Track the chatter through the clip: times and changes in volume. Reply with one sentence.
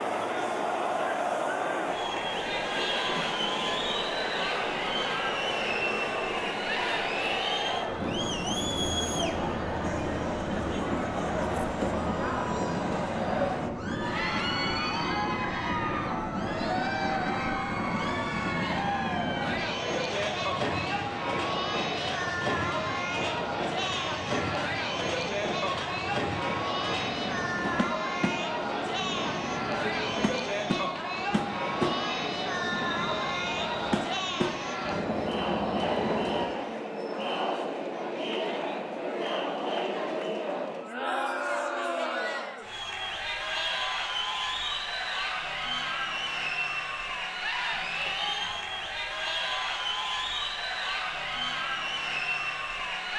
You can hear the chatter from 0.0 to 53.1 s, at a steady volume.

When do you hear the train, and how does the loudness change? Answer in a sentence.
You can hear the train from 0.0 to 36.5 s, at a steady volume.